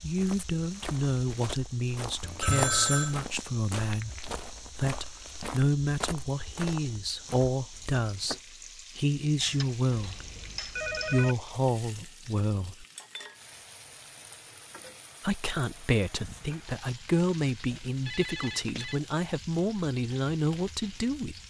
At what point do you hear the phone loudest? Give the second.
3 s.